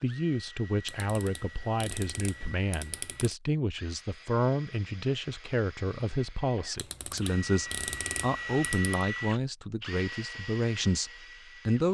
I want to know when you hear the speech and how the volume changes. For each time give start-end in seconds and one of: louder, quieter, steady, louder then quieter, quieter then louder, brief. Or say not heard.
0.0-11.8 steady.